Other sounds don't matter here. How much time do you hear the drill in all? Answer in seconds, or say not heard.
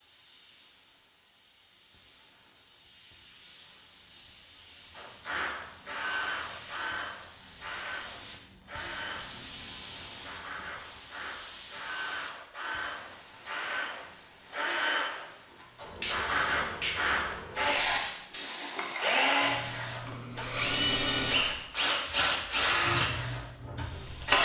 19 s.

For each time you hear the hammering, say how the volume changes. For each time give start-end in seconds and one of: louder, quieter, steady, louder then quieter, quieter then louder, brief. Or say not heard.
not heard.